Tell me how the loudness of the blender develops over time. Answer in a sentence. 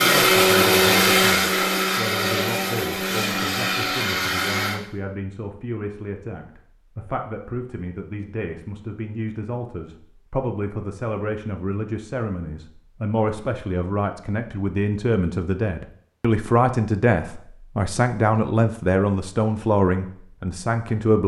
The loudness of the blender goes down.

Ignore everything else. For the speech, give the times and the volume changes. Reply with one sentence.
You can hear the speech from 0.0 to 21.2 s, getting louder.